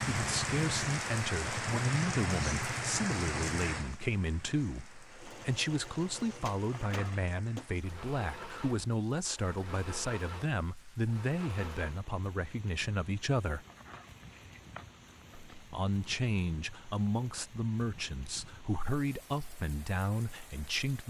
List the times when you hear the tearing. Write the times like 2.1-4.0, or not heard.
6.7-7.3, 13.7-15.7.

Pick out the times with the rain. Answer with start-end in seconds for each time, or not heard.
0.0-21.0.